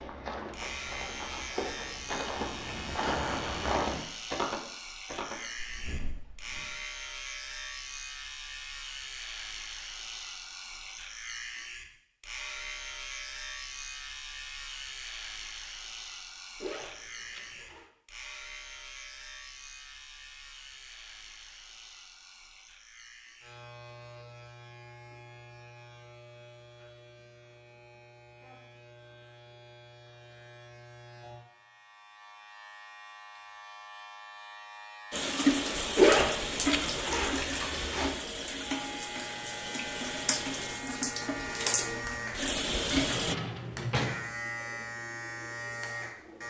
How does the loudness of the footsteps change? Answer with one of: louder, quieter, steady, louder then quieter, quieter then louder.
louder then quieter.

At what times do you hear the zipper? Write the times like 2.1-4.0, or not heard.
16.6-17.9, 36.0-38.1.